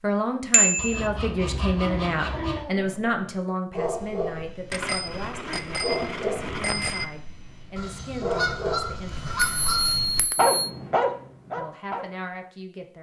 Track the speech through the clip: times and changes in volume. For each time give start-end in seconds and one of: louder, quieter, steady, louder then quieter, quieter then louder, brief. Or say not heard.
0.0-9.5 quieter
11.6-12.9 brief.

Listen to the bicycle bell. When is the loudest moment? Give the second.
1 s.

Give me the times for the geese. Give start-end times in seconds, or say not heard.
0.8-2.6, 7.8-10.2.